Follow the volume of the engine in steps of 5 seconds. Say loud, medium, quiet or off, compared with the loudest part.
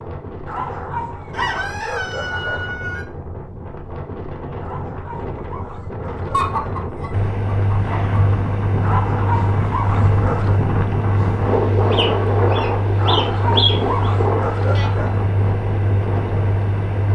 off, loud, loud, loud.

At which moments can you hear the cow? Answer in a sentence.
The cow can't be heard in this clip.